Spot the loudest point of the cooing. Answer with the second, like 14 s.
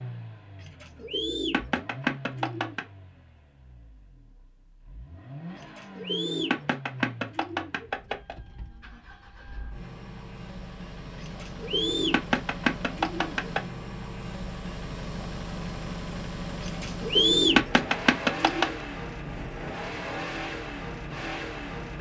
17 s.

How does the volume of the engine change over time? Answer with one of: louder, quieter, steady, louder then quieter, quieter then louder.
louder.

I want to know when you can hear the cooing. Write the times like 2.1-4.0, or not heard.
0.6-2.9, 5.5-8.3, 11.2-13.6, 16.6-18.8.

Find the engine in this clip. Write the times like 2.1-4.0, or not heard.
0.0-21.9.